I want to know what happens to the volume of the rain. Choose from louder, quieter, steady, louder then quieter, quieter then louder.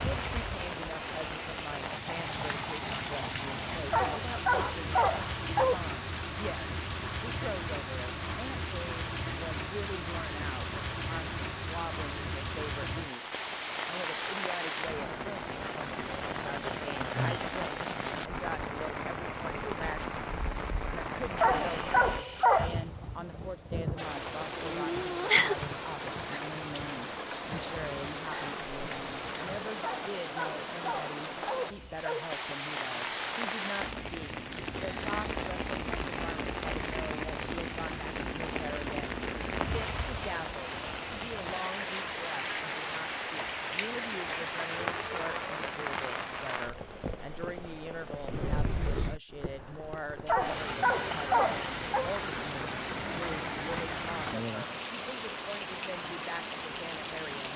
steady.